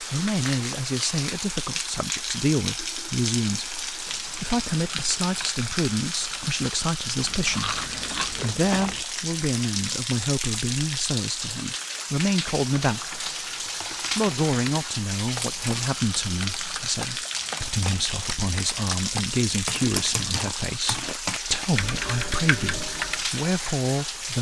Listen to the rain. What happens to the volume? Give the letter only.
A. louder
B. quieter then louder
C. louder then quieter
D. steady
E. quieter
D.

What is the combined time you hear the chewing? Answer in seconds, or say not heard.
4 s.